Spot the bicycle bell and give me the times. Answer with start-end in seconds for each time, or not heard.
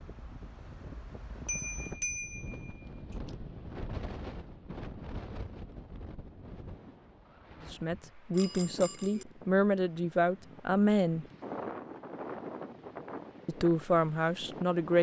1.4-2.9, 8.3-9.2.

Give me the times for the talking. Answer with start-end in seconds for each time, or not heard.
7.7-11.2, 13.4-14.9.